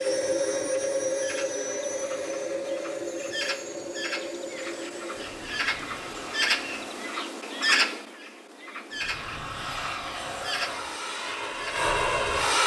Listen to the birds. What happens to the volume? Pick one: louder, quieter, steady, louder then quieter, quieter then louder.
louder then quieter.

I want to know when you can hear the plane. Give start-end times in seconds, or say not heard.
0.0-7.2, 8.9-12.6.